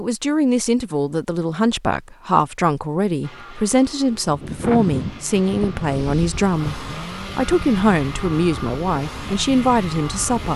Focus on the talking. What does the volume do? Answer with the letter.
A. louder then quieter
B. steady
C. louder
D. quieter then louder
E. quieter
B.